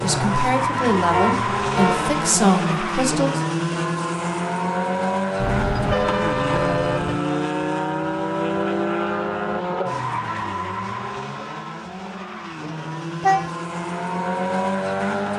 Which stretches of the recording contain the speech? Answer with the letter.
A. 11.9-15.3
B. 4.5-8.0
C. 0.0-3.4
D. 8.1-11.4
C.